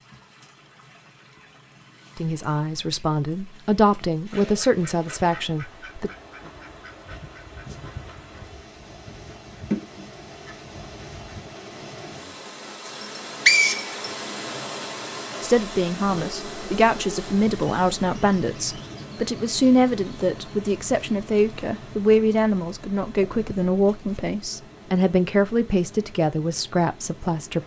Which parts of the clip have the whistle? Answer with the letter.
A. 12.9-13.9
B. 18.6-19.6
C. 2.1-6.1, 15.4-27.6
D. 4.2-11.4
A.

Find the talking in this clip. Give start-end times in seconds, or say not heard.
2.1-6.1, 15.4-27.6.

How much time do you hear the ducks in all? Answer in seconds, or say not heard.
7 s.